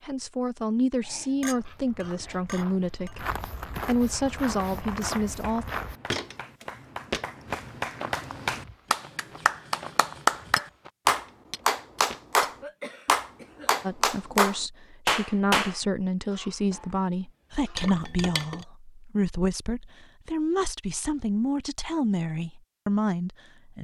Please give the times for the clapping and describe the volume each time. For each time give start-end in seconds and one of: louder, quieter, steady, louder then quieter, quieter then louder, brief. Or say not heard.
4.1-15.8 louder.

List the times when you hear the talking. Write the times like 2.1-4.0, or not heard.
0.0-5.7, 13.8-23.7.